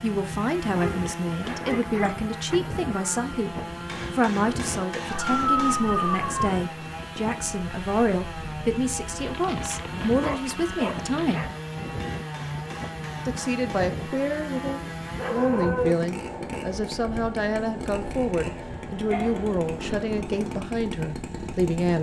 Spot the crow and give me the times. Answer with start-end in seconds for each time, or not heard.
not heard.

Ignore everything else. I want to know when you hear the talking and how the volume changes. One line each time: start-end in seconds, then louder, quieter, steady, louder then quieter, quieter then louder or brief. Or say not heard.
0.0-11.4 steady
13.2-21.9 steady.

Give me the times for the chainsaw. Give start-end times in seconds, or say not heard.
0.0-21.9.